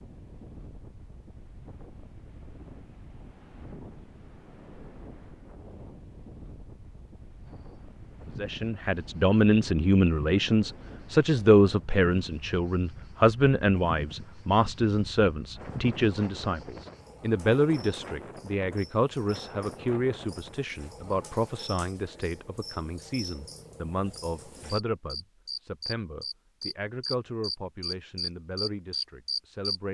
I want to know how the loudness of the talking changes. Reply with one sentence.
The volume of the talking goes down.